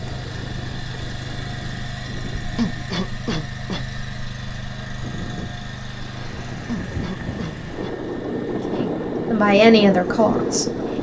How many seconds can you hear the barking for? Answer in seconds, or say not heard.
not heard.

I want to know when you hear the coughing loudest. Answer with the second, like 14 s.
3 s.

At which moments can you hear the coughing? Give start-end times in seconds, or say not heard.
2.5-3.9, 6.7-8.0.